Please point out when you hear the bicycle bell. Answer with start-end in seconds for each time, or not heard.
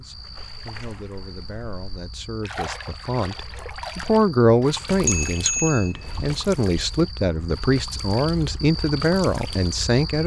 4.9-6.5.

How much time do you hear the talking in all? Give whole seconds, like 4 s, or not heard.
10 s.